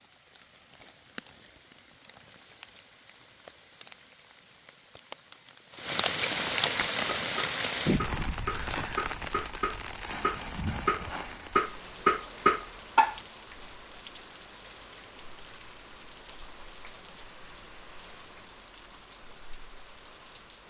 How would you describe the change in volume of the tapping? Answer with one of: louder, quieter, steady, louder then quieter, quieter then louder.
louder.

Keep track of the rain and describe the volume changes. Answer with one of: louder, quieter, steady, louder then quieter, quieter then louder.
louder then quieter.